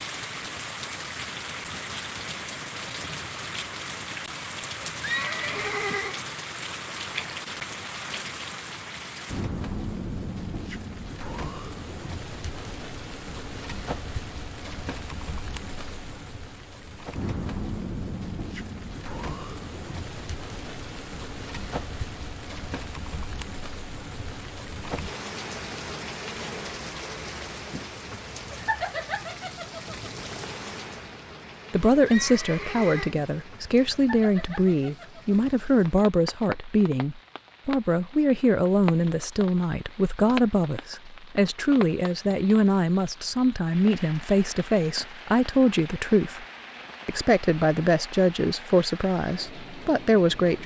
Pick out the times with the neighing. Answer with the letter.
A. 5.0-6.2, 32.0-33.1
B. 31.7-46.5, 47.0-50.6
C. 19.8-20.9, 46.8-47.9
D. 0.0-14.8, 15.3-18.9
A.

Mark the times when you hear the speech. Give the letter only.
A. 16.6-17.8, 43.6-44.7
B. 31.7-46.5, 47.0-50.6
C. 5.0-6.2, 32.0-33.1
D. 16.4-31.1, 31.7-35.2
B.